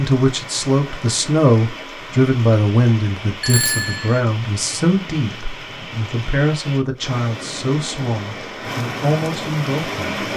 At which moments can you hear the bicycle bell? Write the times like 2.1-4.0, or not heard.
3.4-4.2.